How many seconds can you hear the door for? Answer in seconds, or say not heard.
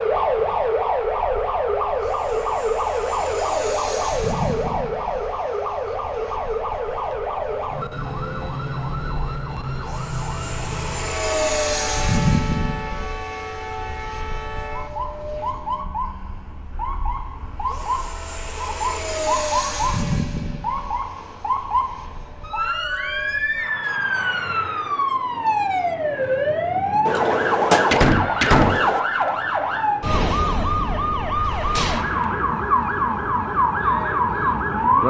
2 s.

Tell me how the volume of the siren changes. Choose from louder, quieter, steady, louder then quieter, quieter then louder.
quieter then louder.